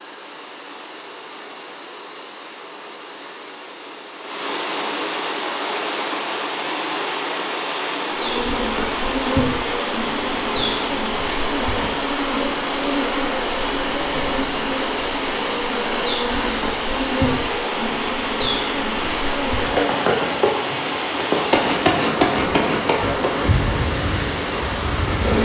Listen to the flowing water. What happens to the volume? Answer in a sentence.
The volume of the flowing water goes up.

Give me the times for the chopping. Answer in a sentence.
The chopping can't be heard in this clip.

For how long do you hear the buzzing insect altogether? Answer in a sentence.
You can hear the buzzing insect for 17 seconds altogether.